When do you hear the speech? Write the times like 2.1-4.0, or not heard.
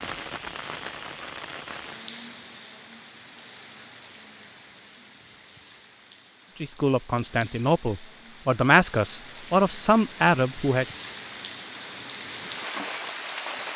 6.6-10.8.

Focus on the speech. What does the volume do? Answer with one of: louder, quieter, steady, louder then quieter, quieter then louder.
louder.